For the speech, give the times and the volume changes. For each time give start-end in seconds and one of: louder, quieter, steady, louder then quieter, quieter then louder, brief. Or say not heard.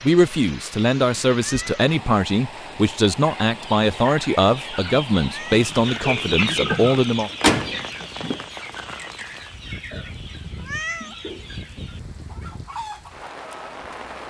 0.0-7.3 steady.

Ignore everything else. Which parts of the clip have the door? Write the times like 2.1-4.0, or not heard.
7.0-8.4.